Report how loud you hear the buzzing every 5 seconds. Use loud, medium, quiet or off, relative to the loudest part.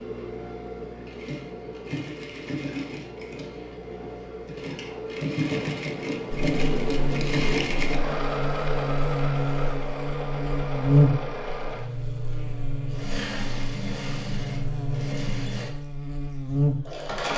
off, loud, loud, loud.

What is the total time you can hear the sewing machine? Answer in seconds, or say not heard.
17 s.